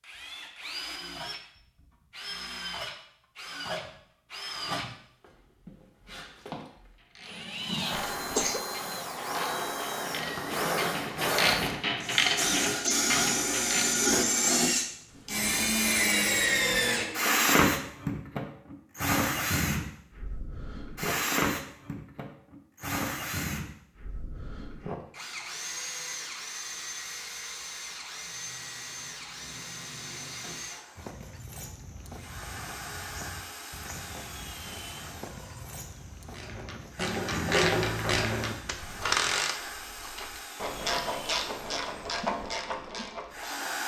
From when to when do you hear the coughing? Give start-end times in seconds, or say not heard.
7.9-8.6.